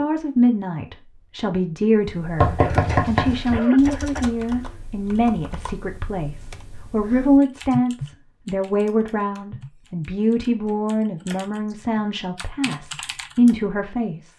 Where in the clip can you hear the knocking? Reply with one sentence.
The knocking can be heard from 2.4 to 3.6 s.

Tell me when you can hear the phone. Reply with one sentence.
You can't hear the phone here.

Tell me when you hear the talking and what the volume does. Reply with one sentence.
The talking can be heard from 0.0 to 14.3 s, at a steady volume.